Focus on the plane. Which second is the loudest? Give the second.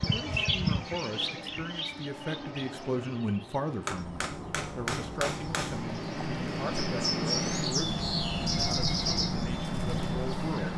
7 s.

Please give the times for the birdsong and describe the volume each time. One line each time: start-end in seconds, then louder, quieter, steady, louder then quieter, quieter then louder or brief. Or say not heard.
0.0-10.7 quieter then louder.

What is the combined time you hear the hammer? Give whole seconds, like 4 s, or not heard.
2 s.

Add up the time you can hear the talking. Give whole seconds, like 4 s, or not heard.
11 s.